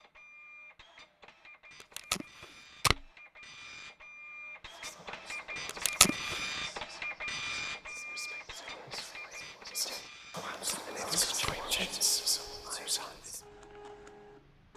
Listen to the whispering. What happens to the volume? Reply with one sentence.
The volume of the whispering goes up.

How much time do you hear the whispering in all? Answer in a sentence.
You can hear the whispering for 9 seconds altogether.